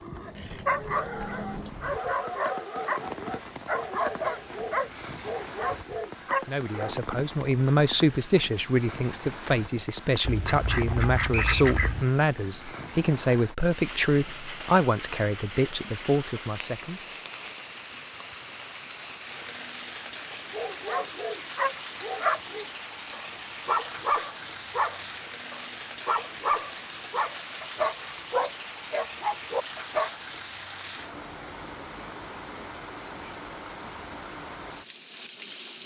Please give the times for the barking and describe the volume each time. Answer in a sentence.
The barking can be heard from 0.0 to 7.0 s, at a steady volume; and from 20.4 to 30.1 s, at a steady volume.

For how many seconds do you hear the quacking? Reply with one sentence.
The quacking can be heard for 2 seconds in total.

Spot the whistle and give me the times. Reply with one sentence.
You can hear the whistle from 11.3 to 11.8 s.